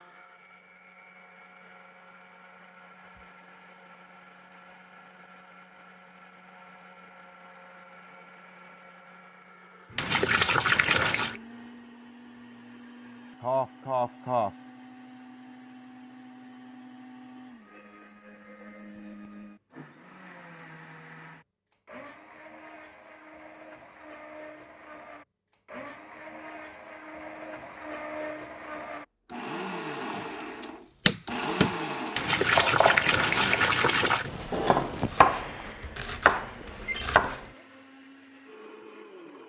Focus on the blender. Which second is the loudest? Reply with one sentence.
The volume of the blender peaks at 32 seconds.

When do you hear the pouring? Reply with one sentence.
You can hear the pouring from 9.9 to 11.4 s and from 32.1 to 34.3 s.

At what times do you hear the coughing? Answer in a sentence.
The coughing can be heard from 13.4 to 14.5 s.